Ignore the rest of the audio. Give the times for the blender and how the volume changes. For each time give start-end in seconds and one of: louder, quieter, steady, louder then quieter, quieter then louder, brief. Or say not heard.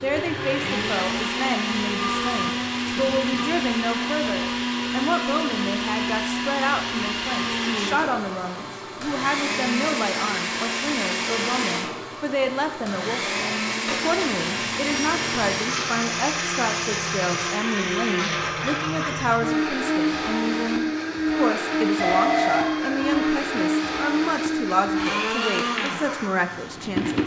0.0-27.2 steady.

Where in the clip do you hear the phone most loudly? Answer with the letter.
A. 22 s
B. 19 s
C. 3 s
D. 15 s
A.